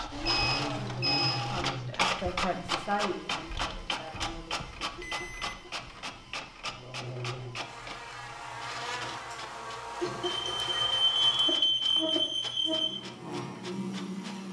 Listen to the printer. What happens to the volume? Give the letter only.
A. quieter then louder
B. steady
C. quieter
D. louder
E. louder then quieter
C.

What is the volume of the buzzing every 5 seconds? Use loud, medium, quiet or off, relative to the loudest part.
off, loud, loud.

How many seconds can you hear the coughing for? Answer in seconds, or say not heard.
3 s.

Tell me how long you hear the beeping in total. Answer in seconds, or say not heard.
5 s.